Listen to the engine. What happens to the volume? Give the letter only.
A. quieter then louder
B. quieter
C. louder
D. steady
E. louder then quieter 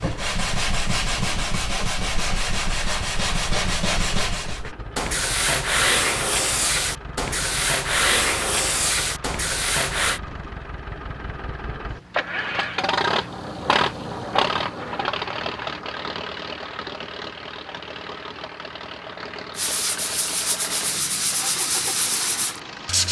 E.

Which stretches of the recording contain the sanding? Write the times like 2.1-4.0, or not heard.
0.0-10.2, 19.6-23.0.